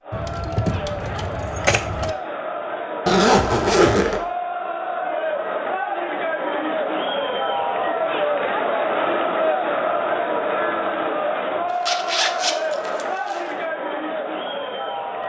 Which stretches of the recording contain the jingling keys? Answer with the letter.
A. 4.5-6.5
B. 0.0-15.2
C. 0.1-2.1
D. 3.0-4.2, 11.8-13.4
C.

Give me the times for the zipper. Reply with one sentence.
You can hear the zipper from 3.0 to 4.2 s and from 11.8 to 13.4 s.